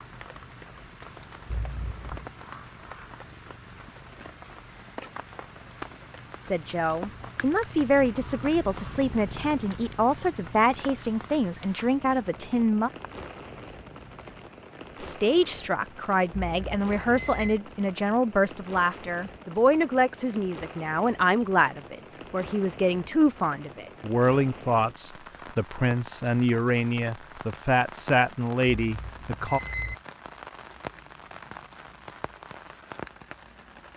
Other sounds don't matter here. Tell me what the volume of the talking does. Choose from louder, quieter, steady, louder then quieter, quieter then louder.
steady.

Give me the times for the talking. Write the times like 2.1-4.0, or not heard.
6.5-12.9, 15.0-29.6.